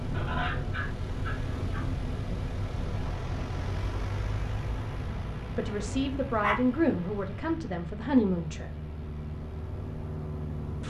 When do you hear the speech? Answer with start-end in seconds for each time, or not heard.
5.5-8.7.